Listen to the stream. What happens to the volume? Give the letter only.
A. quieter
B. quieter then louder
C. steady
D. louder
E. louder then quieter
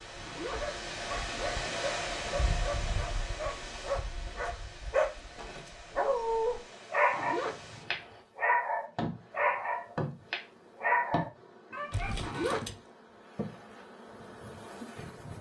A.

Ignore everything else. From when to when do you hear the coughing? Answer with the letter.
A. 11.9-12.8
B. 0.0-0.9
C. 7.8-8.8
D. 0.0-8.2
A.